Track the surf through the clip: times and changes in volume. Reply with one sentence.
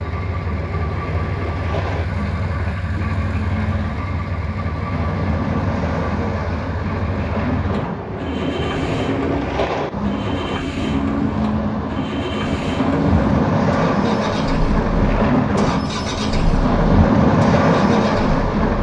The surf can be heard from 0.0 to 18.7 s, getting louder.